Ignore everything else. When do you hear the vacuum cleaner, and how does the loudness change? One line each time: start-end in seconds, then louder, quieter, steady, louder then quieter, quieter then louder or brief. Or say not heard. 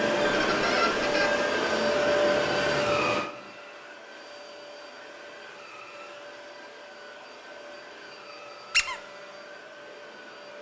0.0-10.5 quieter.